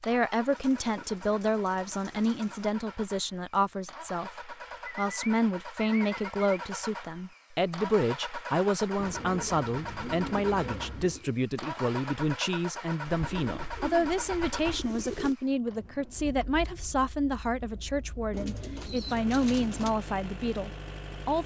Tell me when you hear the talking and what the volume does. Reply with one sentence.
The talking can be heard from 0.0 to 21.4 s, at a steady volume.